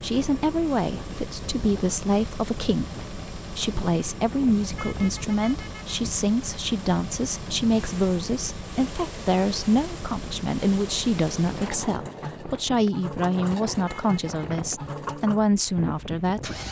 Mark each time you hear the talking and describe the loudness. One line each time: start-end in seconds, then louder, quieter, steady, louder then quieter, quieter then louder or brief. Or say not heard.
0.0-16.6 steady.